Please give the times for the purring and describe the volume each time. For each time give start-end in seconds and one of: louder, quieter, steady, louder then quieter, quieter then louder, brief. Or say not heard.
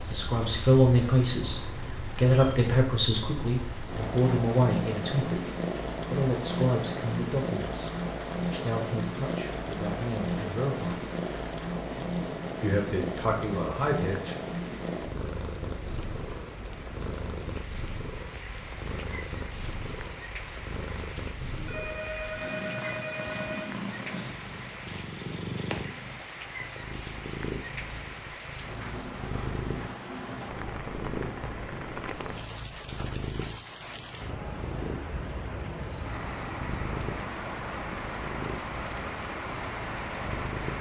0.0-40.7 quieter.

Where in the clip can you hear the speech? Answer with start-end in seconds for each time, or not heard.
0.1-5.5, 6.1-11.0, 12.6-14.3.